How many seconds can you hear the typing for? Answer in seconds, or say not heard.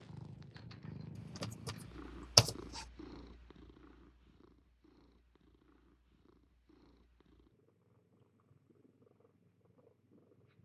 2 s.